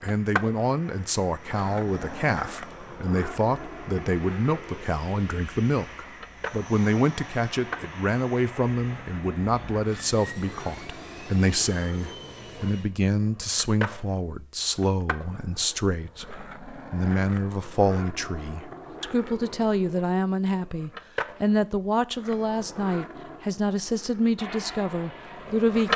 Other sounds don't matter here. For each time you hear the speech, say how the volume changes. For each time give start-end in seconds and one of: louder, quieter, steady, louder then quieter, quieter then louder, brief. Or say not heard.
0.0-25.9 steady.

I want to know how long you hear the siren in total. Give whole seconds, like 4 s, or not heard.
not heard.